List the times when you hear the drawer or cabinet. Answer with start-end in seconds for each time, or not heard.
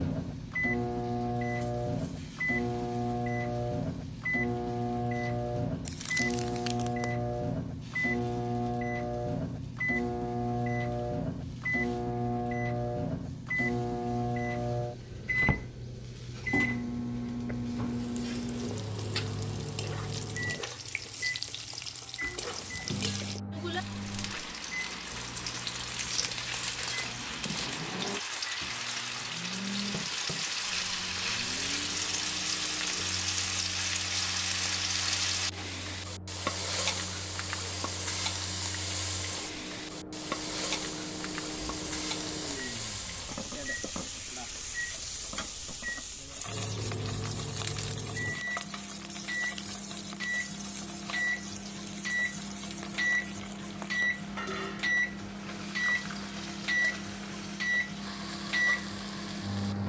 15.0-15.7.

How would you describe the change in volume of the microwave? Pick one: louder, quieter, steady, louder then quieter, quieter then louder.
quieter then louder.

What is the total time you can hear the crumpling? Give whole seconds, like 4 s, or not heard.
5 s.